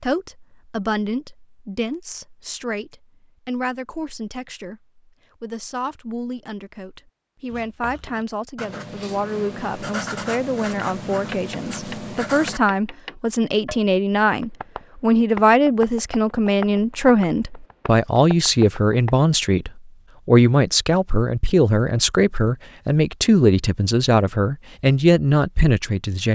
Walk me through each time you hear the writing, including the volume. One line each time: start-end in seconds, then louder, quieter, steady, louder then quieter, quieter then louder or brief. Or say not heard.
7.5-12.6 louder.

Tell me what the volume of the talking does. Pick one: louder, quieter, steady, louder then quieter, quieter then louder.
louder.